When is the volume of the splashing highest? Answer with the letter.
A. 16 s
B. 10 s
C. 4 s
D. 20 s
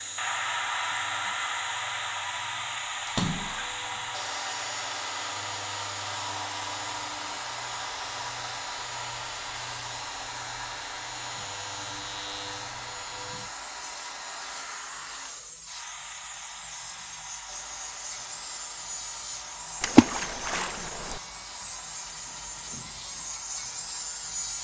D.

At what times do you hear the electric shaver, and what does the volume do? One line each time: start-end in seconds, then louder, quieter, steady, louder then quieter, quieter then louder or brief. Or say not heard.
0.0-24.5 louder.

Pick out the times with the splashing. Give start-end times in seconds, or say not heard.
3.0-4.0, 19.8-21.2.